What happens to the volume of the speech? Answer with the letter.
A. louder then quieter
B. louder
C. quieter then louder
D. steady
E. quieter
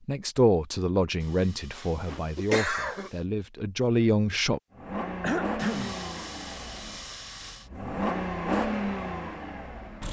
C.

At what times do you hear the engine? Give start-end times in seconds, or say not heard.
4.7-10.0.